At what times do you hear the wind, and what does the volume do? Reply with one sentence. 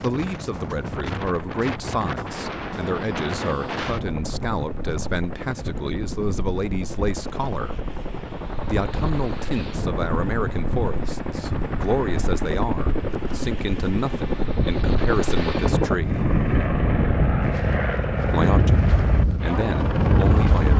The wind can be heard from 0.0 to 20.7 s, getting quieter then louder.